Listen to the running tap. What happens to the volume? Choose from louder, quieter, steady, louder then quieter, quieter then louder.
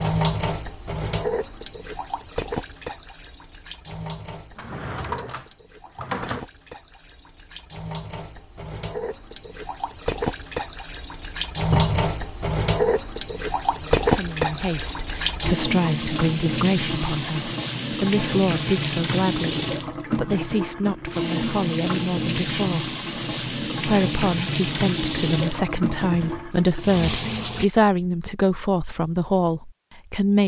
louder.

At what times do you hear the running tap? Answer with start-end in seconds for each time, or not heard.
0.0-27.6.